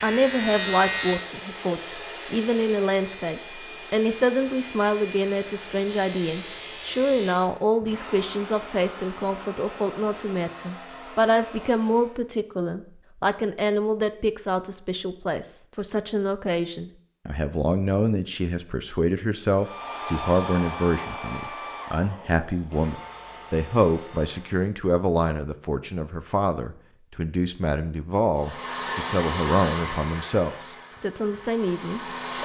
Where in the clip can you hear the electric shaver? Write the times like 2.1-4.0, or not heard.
0.0-7.4.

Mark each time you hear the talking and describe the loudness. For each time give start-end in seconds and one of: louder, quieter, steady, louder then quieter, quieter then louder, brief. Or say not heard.
0.0-32.4 steady.